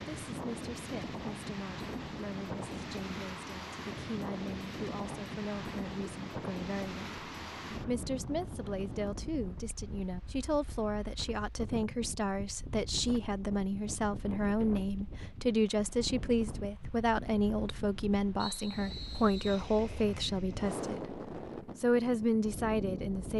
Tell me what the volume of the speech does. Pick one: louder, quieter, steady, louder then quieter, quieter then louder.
louder.